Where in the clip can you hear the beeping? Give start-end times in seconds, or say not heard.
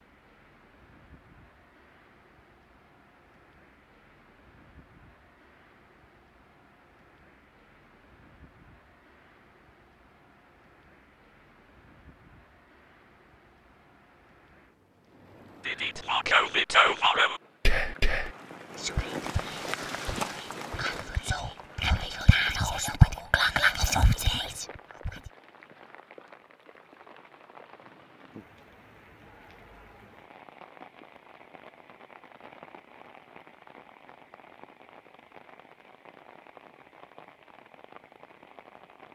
not heard.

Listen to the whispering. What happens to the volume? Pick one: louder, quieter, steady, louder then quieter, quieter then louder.
quieter then louder.